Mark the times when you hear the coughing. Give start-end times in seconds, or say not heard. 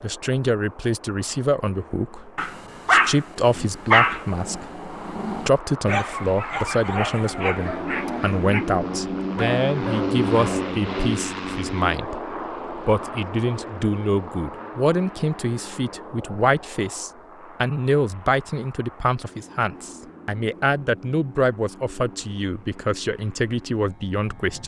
not heard.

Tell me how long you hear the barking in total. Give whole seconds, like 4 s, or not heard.
9 s.